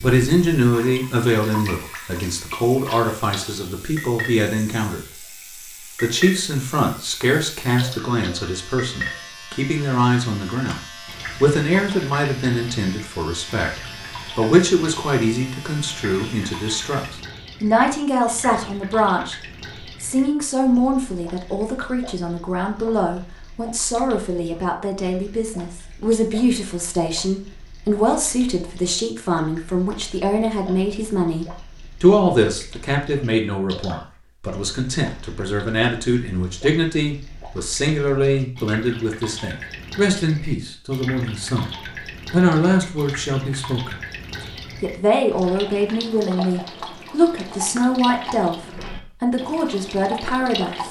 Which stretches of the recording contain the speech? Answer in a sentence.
You can hear the speech from 0.0 to 5.2 s, from 6.0 to 19.4 s, from 20.0 to 41.7 s, from 42.3 to 44.0 s and from 44.8 to 50.8 s.